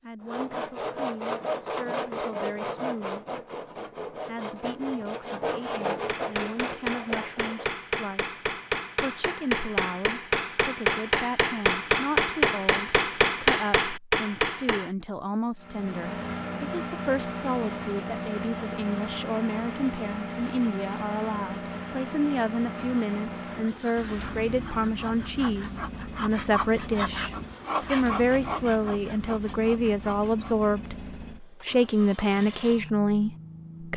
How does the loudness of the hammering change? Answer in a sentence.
The loudness of the hammering goes up.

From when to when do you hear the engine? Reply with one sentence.
You can hear the engine from 15.6 to 33.9 s.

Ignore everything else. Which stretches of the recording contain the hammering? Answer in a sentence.
You can hear the hammering from 6.0 to 14.9 s.